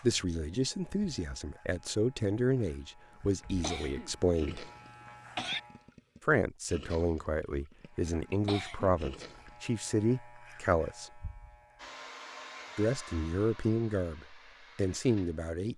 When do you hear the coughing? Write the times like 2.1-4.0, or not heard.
3.6-5.6, 8.4-8.9.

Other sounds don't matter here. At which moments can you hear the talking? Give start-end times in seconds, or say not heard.
0.0-4.7, 6.2-11.2, 12.8-15.7.